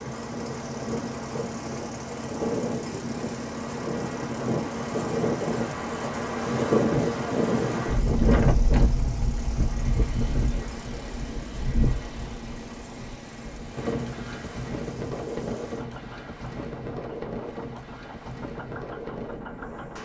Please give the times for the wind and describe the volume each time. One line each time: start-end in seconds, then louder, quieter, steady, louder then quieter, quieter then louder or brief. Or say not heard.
0.0-20.0 louder then quieter.